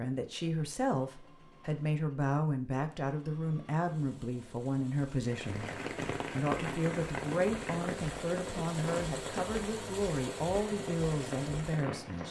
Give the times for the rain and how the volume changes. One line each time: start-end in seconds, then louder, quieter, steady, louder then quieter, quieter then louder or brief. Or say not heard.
5.3-12.2 quieter.